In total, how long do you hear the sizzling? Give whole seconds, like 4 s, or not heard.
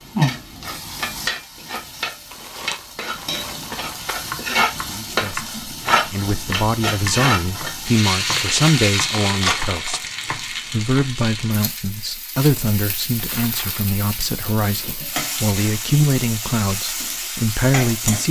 18 s.